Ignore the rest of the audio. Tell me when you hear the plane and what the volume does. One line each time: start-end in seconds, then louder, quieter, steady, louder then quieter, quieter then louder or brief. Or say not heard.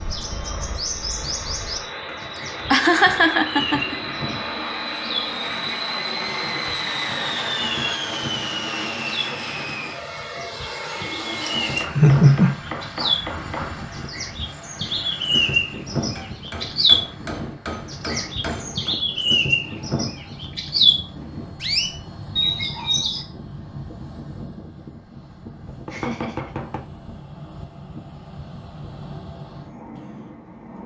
0.0-30.8 quieter.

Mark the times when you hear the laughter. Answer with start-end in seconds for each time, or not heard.
2.4-4.0, 11.4-12.6, 25.9-26.6.